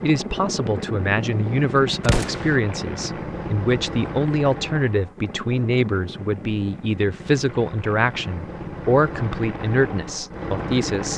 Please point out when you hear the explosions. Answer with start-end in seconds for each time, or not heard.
2.0-2.5.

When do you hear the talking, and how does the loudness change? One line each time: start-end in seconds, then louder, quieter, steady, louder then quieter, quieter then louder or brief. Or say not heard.
0.0-11.1 steady.